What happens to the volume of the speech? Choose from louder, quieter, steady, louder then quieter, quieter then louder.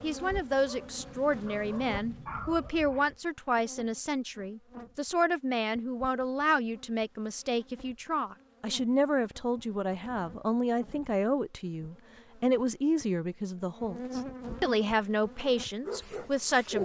steady.